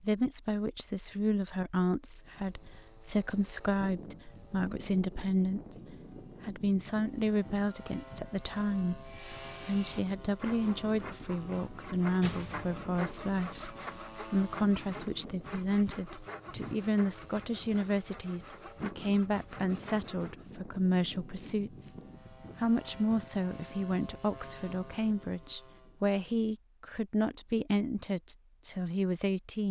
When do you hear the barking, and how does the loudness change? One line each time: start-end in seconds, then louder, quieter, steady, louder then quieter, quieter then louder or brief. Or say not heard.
not heard.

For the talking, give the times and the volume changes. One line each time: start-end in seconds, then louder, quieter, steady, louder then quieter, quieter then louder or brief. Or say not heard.
0.0-21.9 steady
22.6-29.6 steady.